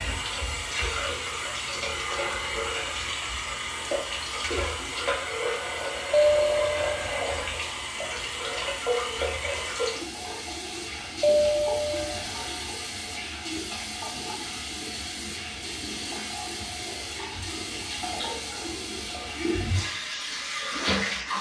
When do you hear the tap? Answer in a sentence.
You can hear the tap from 0.0 to 21.3 s.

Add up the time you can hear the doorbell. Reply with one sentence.
You can hear the doorbell for 2 seconds altogether.